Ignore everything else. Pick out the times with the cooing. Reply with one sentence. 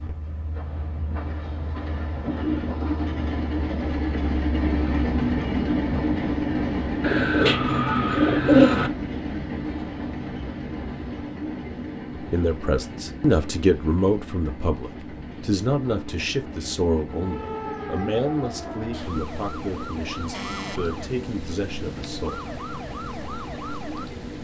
You can hear the cooing from 7.0 to 8.9 s.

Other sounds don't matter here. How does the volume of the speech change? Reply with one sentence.
The volume of the speech goes down.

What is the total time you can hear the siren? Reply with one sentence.
You can hear the siren for 7 seconds altogether.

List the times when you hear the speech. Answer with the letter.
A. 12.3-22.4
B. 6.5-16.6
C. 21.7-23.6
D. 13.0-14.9
A.